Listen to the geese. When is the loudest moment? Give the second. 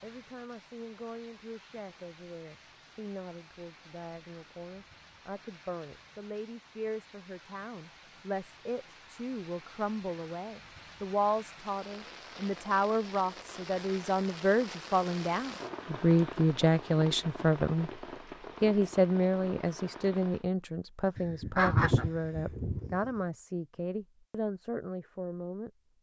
22 s.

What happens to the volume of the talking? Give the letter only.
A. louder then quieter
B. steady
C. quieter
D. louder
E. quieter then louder
A.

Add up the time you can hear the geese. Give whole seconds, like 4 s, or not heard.
2 s.